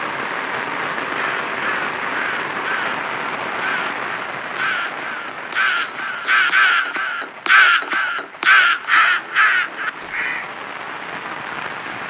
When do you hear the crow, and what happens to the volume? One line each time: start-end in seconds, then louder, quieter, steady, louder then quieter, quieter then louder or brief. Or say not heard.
0.1-10.5 louder.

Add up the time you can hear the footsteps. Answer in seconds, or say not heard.
not heard.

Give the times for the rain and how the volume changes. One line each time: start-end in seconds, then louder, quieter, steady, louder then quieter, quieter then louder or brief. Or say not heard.
0.0-12.0 quieter then louder.